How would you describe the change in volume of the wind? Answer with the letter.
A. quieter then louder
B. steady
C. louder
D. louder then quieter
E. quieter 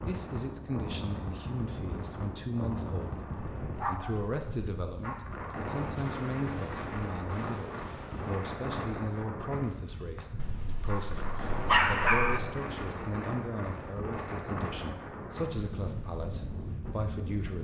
B.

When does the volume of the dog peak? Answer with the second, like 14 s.
12 s.